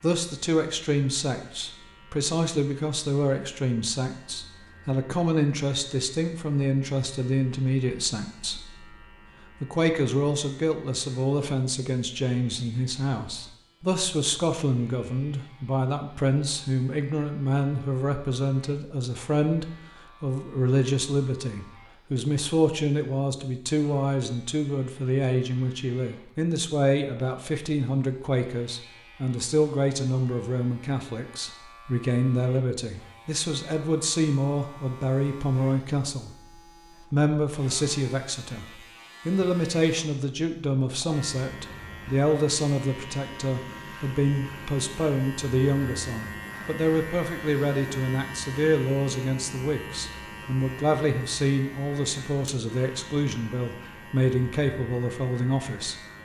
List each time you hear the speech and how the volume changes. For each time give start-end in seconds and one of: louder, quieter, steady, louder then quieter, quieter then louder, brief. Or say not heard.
0.0-36.3 steady
37.0-56.0 steady.